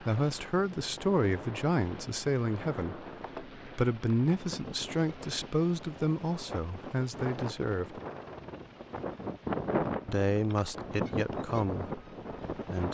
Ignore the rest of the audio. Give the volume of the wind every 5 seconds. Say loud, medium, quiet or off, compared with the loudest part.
medium, loud, loud.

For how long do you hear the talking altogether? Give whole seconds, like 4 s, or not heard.
11 s.